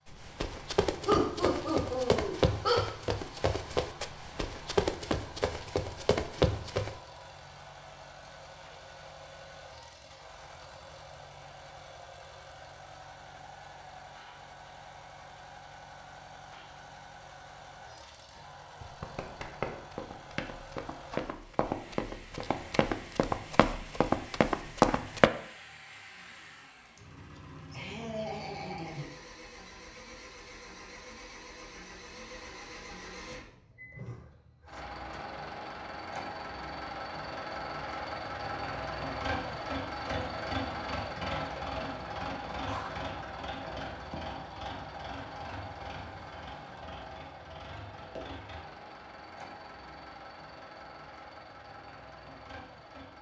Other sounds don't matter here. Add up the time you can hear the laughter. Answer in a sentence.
You can hear the laughter for 4 seconds altogether.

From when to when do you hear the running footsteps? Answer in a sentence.
You can hear the running footsteps from 0.1 to 7.0 s and from 18.4 to 25.3 s.